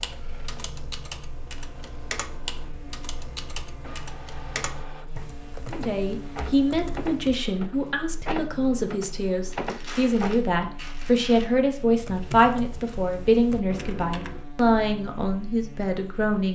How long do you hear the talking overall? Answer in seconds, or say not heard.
11 s.